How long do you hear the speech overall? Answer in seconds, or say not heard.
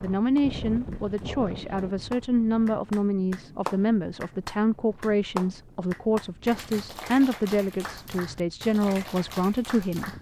10 s.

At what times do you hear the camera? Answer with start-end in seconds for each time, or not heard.
not heard.